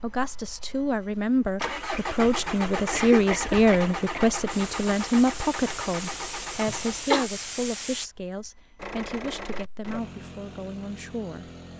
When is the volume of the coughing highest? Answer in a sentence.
The volume of the coughing peaks at 7 seconds.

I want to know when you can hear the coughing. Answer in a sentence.
The coughing can be heard from 2.9 to 4.3 s and from 6.7 to 7.3 s.